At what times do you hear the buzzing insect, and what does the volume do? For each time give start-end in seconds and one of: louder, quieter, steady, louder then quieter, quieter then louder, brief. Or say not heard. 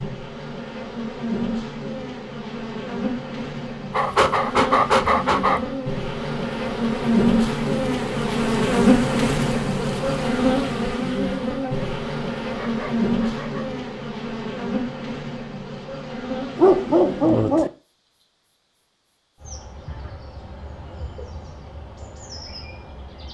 0.0-23.3 louder then quieter.